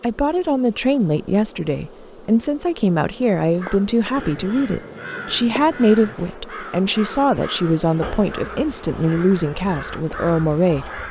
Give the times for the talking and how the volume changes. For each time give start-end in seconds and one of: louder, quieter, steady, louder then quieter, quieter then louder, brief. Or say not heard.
0.0-11.0 steady.